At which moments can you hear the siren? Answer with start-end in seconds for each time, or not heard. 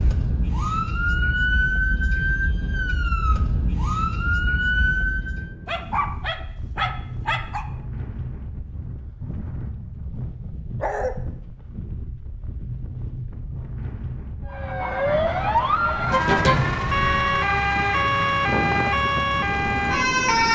0.0-5.5, 14.4-20.5.